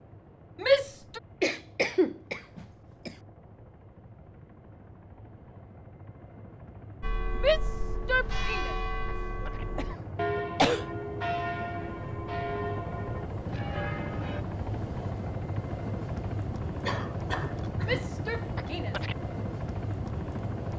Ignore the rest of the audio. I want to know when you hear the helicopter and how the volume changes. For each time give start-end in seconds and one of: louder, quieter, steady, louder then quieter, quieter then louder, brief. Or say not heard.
0.0-20.7 louder.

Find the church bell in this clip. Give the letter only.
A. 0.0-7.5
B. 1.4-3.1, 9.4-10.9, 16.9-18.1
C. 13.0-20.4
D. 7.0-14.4
D.